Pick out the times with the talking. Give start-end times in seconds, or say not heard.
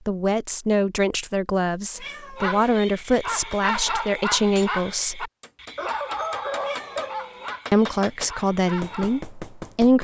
0.1-5.2, 7.7-9.9.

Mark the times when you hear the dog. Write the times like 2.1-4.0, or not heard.
2.4-9.2.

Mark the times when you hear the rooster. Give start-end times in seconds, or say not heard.
5.8-7.2.